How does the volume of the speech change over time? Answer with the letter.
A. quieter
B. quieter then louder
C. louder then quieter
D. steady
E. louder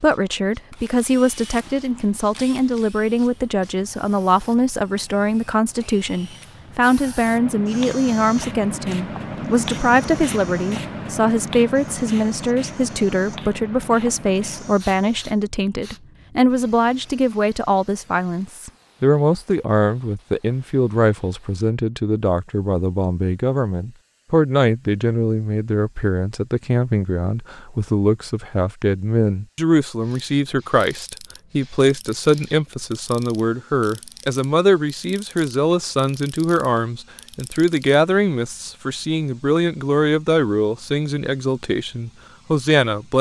D.